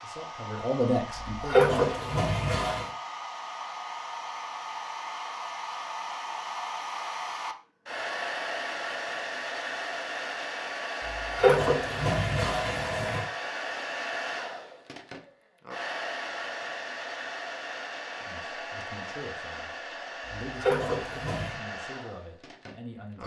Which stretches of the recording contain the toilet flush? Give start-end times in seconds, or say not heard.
1.2-2.9, 11.1-13.2, 20.4-21.6.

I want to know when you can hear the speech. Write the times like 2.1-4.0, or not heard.
0.0-1.8, 18.2-23.2.